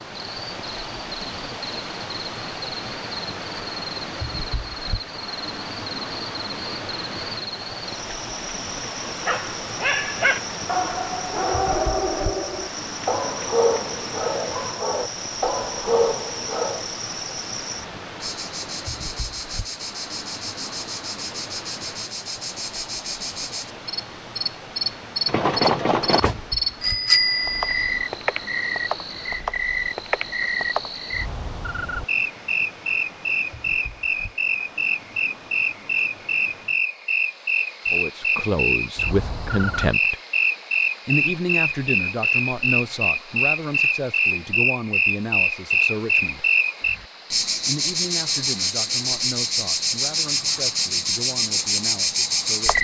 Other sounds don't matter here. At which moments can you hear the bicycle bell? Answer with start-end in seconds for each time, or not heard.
25.2-27.8.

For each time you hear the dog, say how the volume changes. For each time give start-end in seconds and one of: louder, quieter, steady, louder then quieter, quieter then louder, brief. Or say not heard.
9.1-16.9 steady.